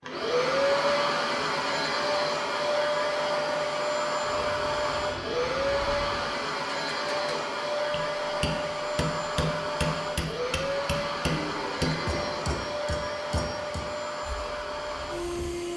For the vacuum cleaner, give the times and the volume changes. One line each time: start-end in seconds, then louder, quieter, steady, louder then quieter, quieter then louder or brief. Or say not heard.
0.0-15.7 quieter.